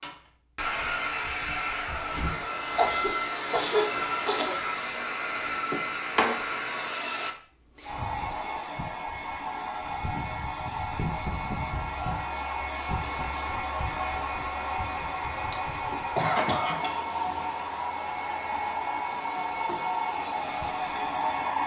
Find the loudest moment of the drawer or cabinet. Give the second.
6 s.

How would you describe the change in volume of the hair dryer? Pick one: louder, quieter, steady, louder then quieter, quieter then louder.
steady.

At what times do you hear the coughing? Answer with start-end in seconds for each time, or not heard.
2.8-4.5, 15.3-17.0.